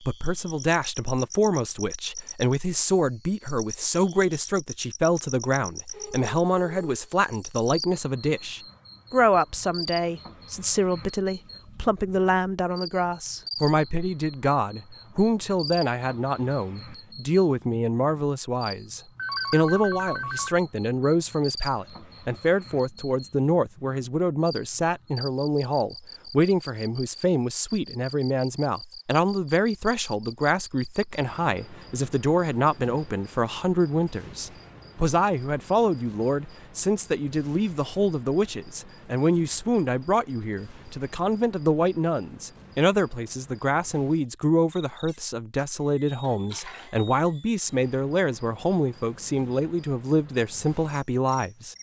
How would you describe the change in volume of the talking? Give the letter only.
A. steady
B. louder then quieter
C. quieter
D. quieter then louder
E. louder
A.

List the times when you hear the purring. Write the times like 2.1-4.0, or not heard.
not heard.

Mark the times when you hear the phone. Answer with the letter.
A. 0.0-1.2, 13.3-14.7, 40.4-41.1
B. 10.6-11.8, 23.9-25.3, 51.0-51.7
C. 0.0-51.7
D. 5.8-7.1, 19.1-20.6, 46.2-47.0
D.